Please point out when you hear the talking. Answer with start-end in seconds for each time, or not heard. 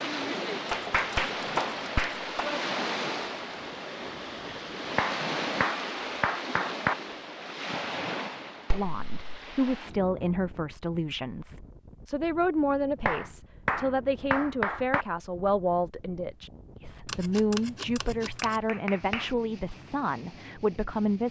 8.7-21.2.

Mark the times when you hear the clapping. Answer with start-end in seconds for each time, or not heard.
0.7-2.6, 5.0-7.0, 8.7-9.4, 13.1-15.1, 18.4-19.3.